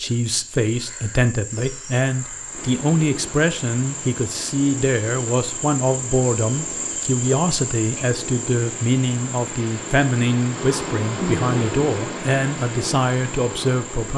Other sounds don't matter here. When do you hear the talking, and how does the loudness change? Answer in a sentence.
You can hear the talking from 0.0 to 14.1 s, at a steady volume.